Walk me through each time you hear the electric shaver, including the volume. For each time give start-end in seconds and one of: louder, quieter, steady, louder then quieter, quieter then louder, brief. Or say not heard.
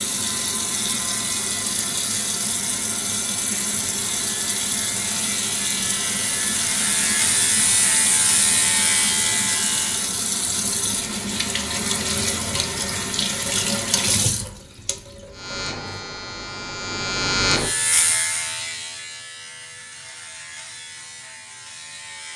0.1-10.2 louder
15.3-22.3 louder then quieter.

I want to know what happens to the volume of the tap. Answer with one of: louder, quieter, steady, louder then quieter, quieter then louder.
steady.